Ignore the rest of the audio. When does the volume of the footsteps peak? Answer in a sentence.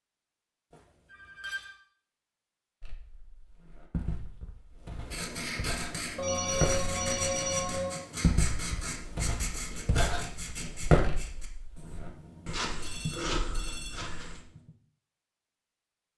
The volume of the footsteps peaks at 11 seconds.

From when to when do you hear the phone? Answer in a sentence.
The phone can be heard from 0.7 to 1.7 s, from 6.2 to 8.0 s and from 12.8 to 14.1 s.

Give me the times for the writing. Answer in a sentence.
You can hear the writing from 4.9 to 14.8 s.